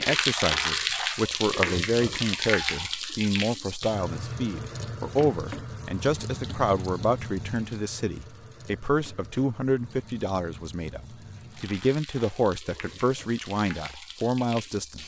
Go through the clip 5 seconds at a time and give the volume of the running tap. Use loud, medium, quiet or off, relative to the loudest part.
loud, medium, quiet.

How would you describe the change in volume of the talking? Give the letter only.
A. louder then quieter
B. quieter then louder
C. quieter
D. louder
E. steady
E.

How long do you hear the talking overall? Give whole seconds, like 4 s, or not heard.
15 s.